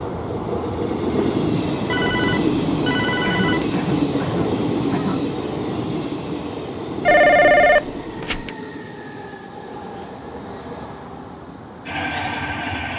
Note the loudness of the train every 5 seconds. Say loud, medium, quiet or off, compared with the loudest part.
loud, medium, medium.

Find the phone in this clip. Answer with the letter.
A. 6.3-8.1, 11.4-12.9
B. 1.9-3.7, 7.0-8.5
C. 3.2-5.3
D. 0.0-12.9
B.